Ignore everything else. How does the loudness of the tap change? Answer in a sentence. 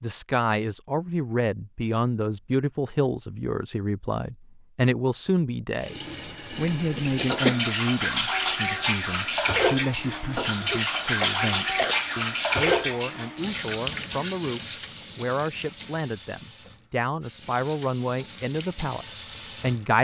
The loudness of the tap goes down.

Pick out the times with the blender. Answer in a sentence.
The blender can't be heard in this clip.